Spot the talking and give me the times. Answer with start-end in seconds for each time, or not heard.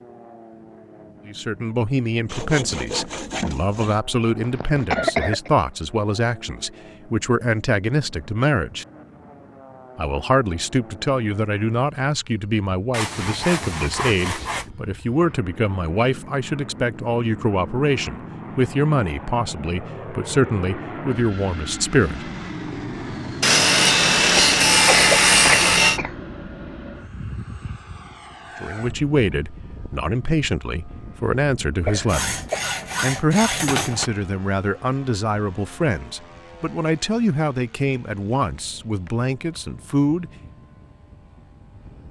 1.2-8.8, 9.9-22.3, 28.6-32.4, 33.0-40.3.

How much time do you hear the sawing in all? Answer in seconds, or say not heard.
8 s.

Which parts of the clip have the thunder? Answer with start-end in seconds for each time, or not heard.
not heard.